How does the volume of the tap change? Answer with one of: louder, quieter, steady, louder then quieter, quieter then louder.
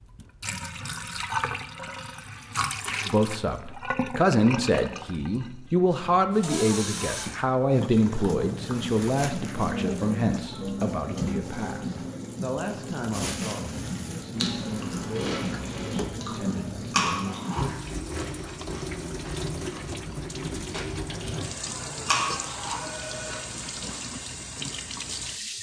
steady.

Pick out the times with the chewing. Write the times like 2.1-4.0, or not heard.
14.3-24.2.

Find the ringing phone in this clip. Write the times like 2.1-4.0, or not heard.
21.1-23.4.